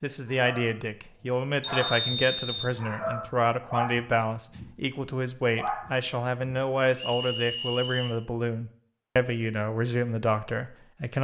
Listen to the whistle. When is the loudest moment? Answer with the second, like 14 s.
2 s.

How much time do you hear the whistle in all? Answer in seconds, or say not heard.
2 s.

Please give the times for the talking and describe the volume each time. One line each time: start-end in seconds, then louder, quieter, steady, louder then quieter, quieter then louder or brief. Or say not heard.
0.0-11.1 steady.